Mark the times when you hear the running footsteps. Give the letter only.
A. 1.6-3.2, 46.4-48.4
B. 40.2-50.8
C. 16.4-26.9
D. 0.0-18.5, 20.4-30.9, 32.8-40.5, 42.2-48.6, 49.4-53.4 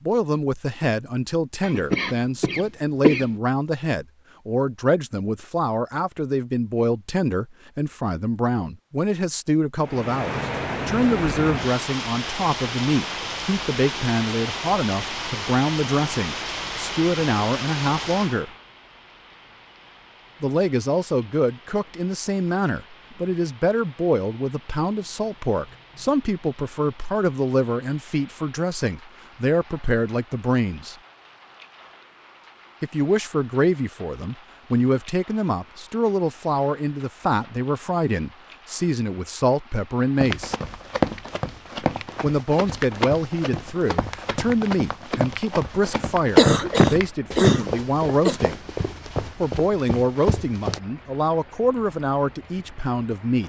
B.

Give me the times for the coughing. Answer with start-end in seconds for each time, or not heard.
1.6-3.2, 46.4-48.4.